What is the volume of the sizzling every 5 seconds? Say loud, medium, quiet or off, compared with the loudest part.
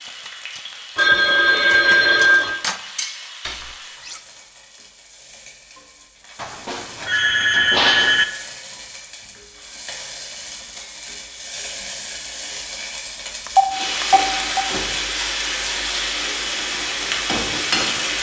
quiet, quiet, medium, loud.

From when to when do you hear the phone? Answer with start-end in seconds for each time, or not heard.
0.9-2.6, 6.3-8.2, 13.4-14.7.